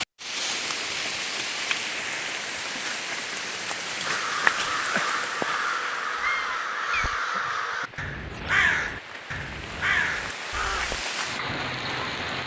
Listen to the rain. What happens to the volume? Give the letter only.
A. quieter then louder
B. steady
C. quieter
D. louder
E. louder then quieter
A.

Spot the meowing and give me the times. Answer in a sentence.
The meowing can be heard from 6.2 to 7.2 s.